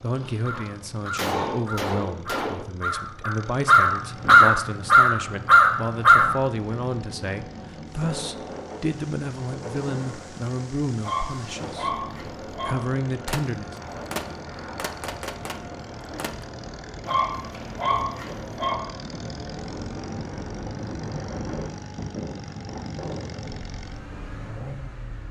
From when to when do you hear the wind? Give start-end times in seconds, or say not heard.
6.0-25.2.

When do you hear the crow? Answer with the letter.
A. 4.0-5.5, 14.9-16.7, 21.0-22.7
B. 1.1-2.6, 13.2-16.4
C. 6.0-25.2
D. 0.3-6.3
D.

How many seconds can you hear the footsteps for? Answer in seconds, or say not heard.
not heard.